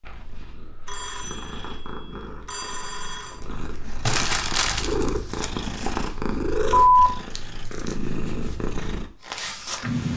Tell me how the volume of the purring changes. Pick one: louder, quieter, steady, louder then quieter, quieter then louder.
louder.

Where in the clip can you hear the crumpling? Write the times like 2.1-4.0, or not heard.
4.0-5.0.